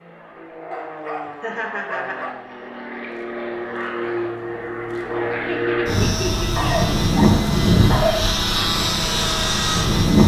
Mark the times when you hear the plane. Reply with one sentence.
You can hear the plane from 0.0 to 10.2 s.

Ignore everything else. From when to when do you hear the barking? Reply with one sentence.
The barking can be heard from 0.7 to 2.3 s and from 6.5 to 8.3 s.